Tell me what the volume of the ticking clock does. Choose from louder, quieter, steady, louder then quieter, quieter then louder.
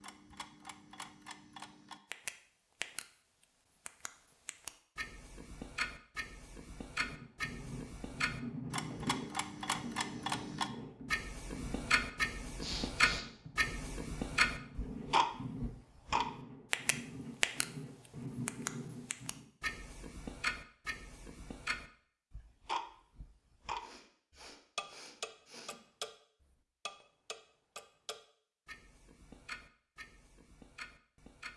louder then quieter.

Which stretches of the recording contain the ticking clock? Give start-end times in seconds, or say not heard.
0.0-3.0, 3.9-17.6, 18.4-31.5.